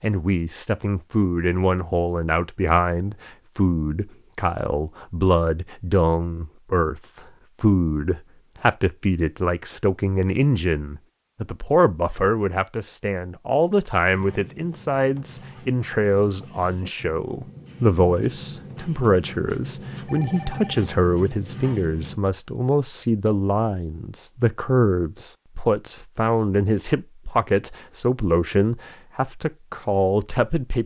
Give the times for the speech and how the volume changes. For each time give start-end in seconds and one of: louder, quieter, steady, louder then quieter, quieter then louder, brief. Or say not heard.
0.0-30.8 steady.